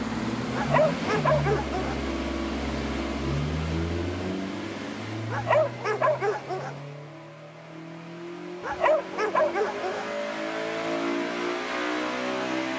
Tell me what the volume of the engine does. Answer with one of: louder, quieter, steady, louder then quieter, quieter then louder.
quieter then louder.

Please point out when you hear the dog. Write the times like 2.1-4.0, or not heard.
0.5-2.0, 5.3-6.8, 8.6-10.2.